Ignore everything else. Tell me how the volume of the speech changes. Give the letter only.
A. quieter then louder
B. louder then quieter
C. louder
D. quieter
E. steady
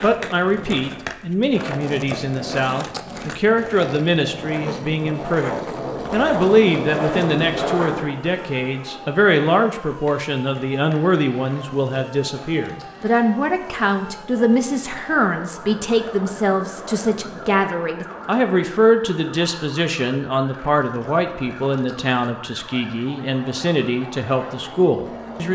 E.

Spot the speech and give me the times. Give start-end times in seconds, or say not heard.
0.0-25.4.